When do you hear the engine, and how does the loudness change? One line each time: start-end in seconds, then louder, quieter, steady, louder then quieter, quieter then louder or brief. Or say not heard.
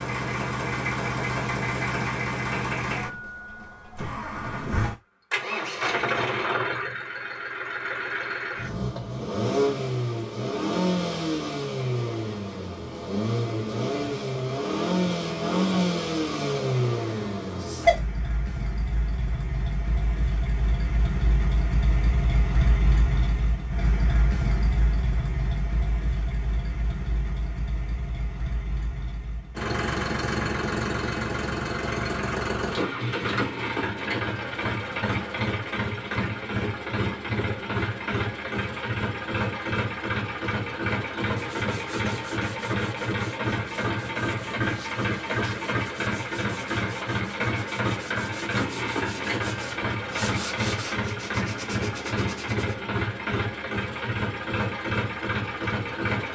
0.0-56.2 steady.